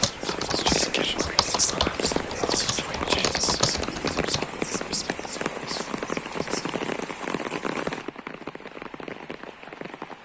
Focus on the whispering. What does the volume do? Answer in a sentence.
The loudness of the whispering goes down.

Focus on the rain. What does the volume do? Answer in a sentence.
The loudness of the rain goes down.